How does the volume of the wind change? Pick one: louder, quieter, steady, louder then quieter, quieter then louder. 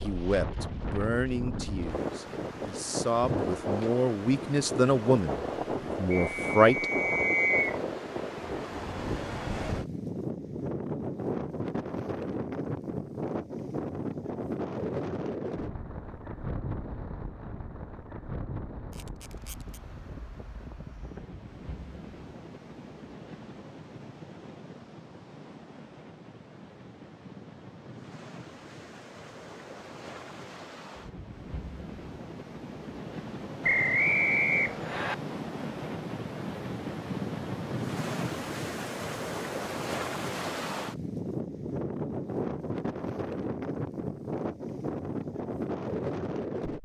quieter then louder.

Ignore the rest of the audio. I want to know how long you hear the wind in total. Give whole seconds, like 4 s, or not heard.
47 s.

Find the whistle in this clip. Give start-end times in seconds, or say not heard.
6.1-7.8, 33.6-35.1.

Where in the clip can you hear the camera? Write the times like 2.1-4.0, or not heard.
18.9-19.8.